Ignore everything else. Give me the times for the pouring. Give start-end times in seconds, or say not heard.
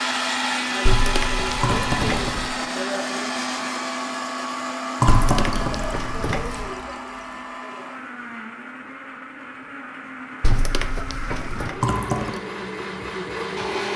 1.6-2.5, 5.0-6.8, 11.8-12.4.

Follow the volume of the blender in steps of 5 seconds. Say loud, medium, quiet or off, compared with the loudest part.
loud, medium, medium.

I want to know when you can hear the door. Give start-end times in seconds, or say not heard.
0.8-2.4, 5.0-6.7, 10.4-11.8.